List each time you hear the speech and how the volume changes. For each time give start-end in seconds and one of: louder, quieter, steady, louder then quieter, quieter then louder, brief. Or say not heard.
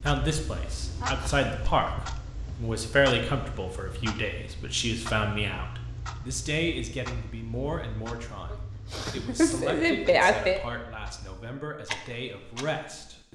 0.0-13.2 quieter.